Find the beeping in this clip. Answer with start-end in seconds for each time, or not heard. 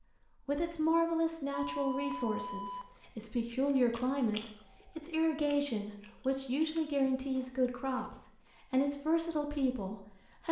1.7-2.9.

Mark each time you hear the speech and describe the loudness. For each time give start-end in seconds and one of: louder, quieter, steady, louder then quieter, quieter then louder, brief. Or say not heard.
0.5-10.4 steady.